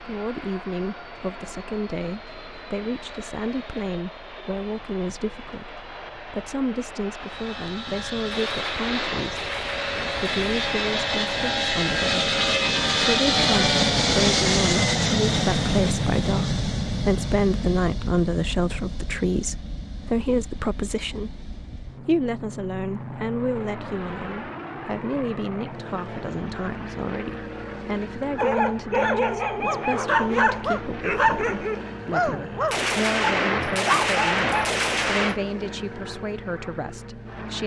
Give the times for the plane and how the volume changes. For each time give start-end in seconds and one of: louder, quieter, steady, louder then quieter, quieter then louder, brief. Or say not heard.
0.0-37.6 louder then quieter.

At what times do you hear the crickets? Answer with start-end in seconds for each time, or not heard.
not heard.